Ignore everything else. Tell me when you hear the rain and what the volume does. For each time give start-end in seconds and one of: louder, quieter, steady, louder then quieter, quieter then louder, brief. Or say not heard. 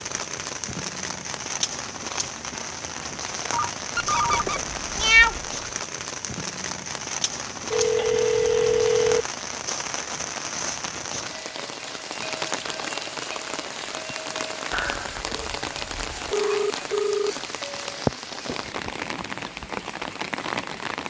0.0-21.0 steady.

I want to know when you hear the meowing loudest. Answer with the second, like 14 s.
5 s.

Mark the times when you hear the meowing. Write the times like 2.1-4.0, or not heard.
4.0-5.4, 14.7-16.4.